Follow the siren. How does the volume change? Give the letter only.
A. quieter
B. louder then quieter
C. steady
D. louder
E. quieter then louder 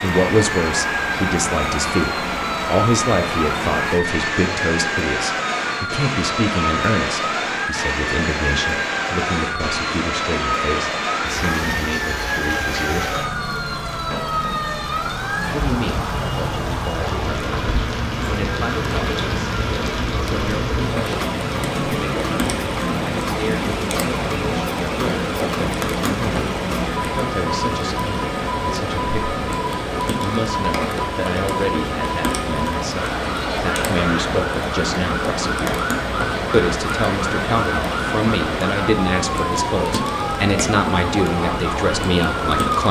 C.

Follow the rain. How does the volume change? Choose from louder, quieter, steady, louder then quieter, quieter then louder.
steady.